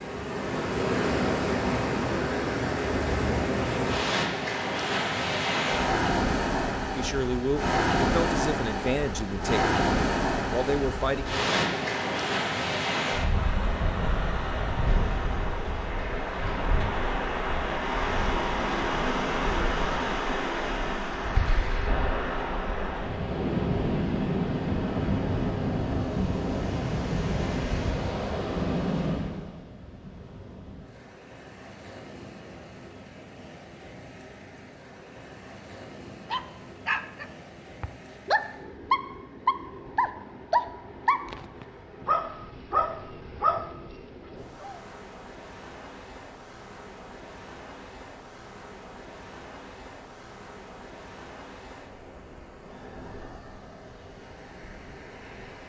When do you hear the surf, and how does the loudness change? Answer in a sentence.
The surf can be heard from 0.0 to 55.6 s, getting quieter.